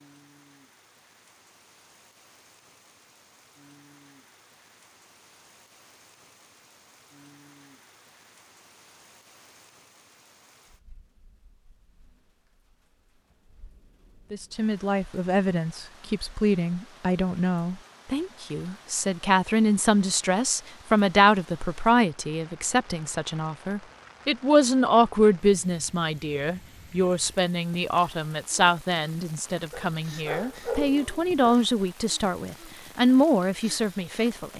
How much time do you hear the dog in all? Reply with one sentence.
The dog can be heard for 2 seconds in total.